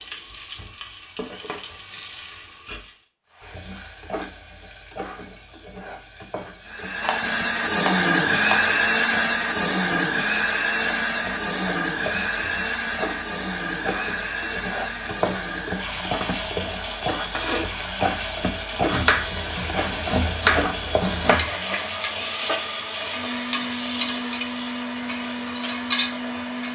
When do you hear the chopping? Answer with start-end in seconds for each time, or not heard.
7.0-8.8, 18.9-21.6.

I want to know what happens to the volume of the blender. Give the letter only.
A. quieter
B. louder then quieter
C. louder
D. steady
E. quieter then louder
A.